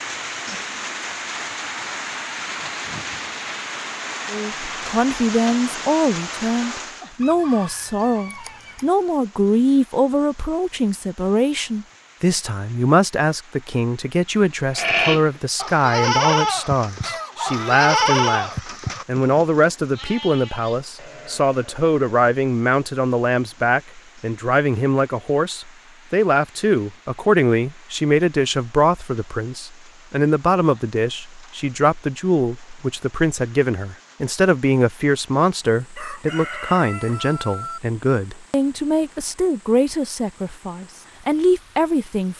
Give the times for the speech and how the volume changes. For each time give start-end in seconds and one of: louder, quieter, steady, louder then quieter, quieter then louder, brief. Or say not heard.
4.3-42.3 steady.